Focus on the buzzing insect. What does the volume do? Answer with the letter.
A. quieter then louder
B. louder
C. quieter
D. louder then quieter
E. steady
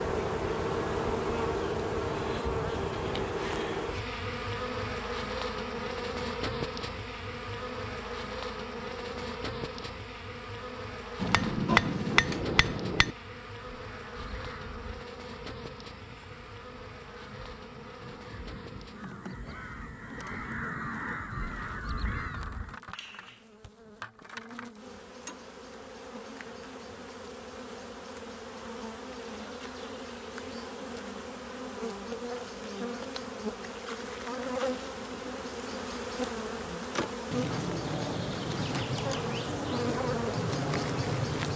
A.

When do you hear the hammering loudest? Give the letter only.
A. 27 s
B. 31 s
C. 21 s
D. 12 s
D.